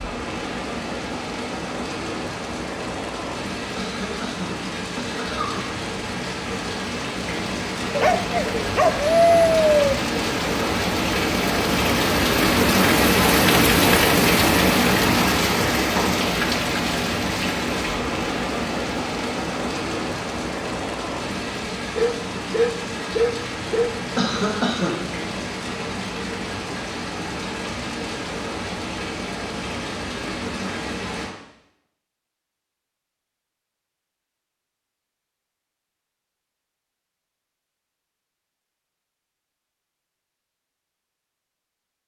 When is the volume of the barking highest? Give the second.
9 s.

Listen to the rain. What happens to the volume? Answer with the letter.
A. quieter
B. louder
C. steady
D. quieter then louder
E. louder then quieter
E.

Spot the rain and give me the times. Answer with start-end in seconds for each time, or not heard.
0.0-31.4.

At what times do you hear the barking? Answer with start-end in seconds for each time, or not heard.
7.9-9.9, 21.9-23.9.